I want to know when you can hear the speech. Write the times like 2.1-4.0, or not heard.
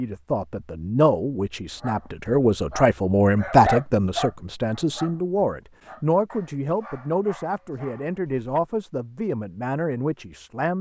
0.0-10.7.